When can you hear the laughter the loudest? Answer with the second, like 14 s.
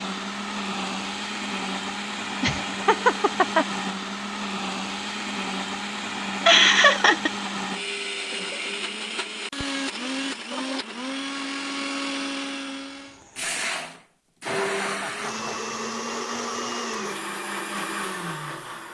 7 s.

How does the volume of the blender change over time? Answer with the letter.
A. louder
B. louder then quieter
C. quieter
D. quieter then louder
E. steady
E.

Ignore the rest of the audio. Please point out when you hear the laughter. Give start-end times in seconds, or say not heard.
2.4-3.6, 6.5-7.3, 14.4-15.6.